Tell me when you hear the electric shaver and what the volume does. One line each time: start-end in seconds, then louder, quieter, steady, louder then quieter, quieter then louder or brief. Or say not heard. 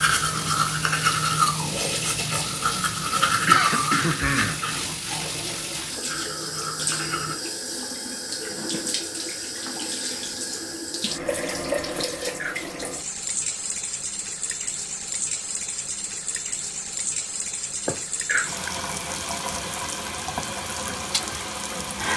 not heard.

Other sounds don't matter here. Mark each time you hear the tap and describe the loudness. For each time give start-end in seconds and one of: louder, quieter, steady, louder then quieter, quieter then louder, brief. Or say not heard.
0.0-22.1 steady.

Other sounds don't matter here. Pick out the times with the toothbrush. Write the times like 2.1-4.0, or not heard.
0.0-7.3.